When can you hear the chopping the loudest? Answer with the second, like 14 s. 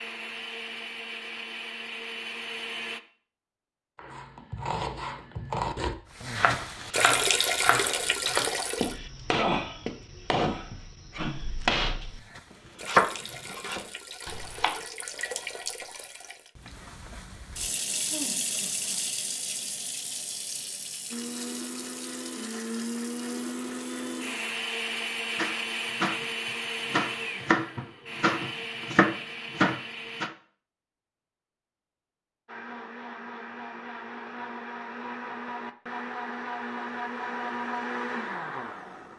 13 s.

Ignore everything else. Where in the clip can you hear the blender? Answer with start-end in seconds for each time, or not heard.
0.0-3.0, 21.1-30.3, 32.5-39.1.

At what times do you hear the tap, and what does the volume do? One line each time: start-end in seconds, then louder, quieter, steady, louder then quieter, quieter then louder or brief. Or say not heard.
6.1-8.9 brief
12.1-24.6 louder then quieter.